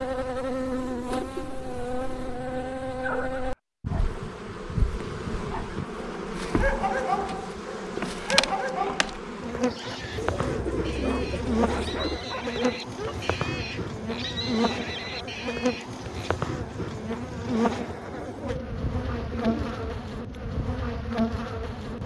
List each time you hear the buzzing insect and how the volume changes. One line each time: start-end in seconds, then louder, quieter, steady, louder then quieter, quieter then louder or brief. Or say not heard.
0.0-22.0 steady.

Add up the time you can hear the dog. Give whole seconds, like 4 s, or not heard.
10 s.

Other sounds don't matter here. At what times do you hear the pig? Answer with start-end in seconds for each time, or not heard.
8.2-16.3.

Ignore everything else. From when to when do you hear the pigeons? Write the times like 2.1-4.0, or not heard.
0.8-2.8, 10.2-12.2, 18.1-19.9.